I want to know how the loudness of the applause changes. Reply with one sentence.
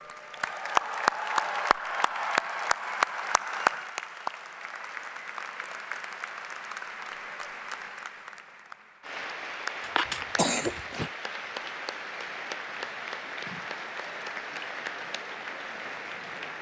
The loudness of the applause goes down.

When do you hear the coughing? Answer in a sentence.
The coughing can be heard from 9.8 to 11.1 s.